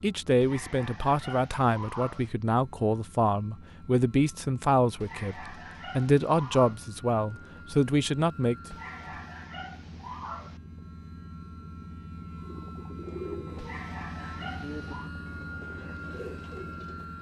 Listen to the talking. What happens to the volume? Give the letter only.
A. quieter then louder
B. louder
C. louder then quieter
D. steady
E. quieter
D.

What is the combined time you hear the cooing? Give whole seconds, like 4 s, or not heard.
5 s.